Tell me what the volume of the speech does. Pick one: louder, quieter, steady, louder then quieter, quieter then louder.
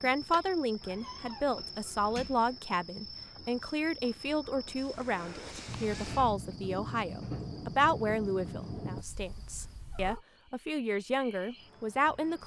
steady.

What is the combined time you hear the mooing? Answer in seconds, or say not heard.
not heard.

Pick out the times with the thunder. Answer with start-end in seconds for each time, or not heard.
5.7-9.1.